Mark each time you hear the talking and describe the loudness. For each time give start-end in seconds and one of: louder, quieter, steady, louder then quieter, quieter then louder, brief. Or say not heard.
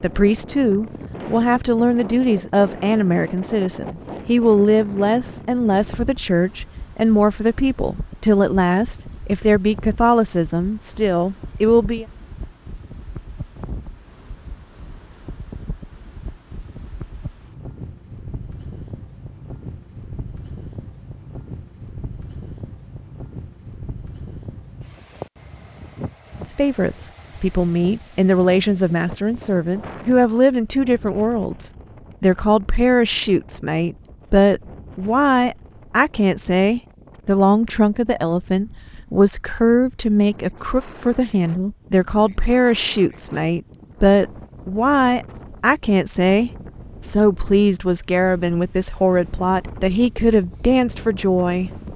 0.0-12.1 steady
26.4-51.8 steady.